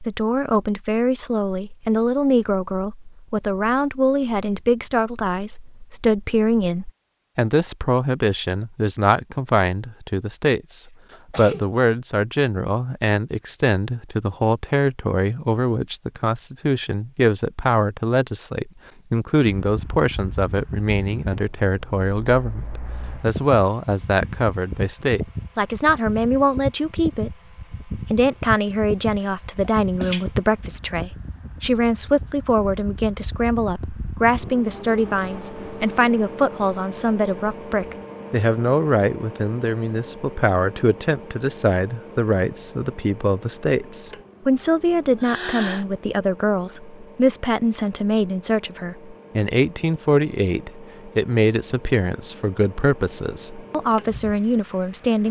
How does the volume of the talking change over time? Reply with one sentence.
The volume of the talking stays about the same.